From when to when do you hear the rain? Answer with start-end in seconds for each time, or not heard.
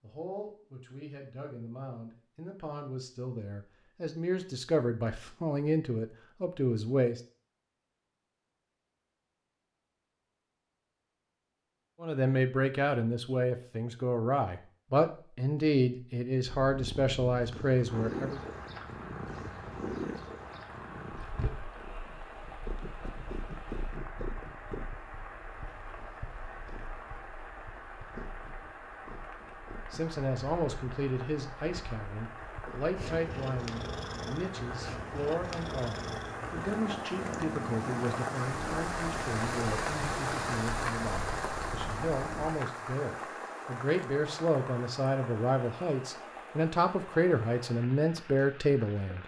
17.9-49.2.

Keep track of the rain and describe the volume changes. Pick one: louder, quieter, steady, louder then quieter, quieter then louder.
louder then quieter.